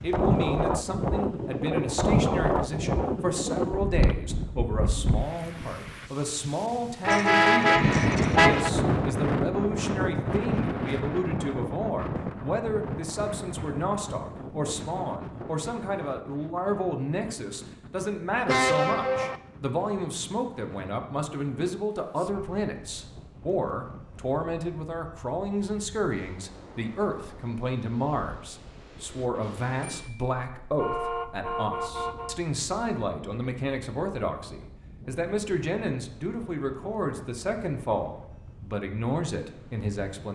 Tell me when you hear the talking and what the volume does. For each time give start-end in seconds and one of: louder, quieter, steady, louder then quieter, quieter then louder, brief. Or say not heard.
0.0-40.3 steady.